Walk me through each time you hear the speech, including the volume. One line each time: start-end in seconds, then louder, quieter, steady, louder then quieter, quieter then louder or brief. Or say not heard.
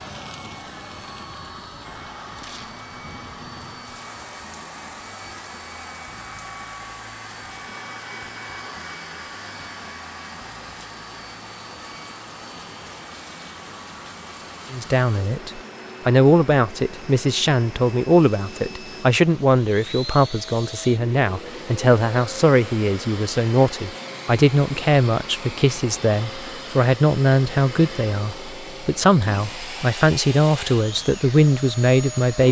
14.7-32.4 steady.